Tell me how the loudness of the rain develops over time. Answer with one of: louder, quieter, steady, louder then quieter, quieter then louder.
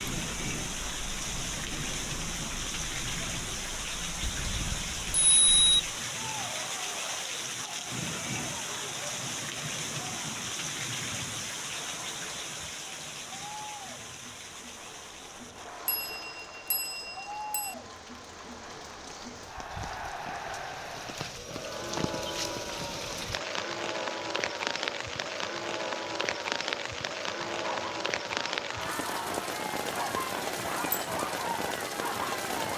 quieter then louder.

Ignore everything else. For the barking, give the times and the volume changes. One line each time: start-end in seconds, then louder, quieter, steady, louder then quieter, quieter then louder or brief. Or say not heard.
27.4-32.7 louder.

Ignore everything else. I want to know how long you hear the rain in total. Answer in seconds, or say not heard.
33 s.